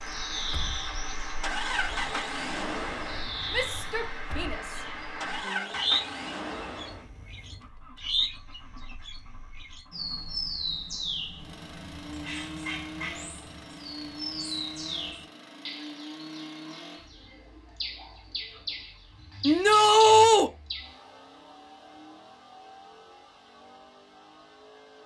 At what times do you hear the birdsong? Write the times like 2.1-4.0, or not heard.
0.0-21.0.